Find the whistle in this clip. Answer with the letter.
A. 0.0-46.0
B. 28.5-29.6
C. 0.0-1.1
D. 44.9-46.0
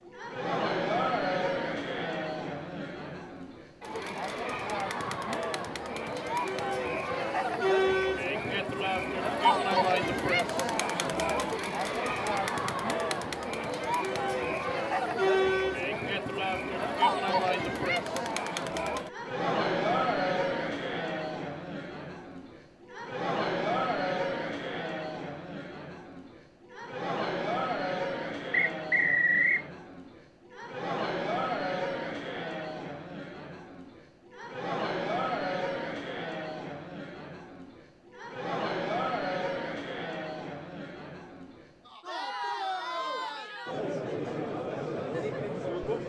B.